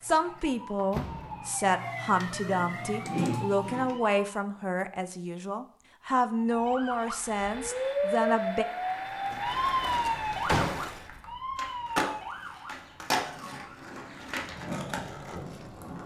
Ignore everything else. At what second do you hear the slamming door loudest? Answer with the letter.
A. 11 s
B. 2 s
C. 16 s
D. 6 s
A.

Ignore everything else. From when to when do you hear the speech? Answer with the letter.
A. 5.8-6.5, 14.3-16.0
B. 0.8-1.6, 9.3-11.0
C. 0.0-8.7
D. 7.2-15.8
C.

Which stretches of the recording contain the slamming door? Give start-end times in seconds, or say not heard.
0.8-1.6, 9.3-11.0.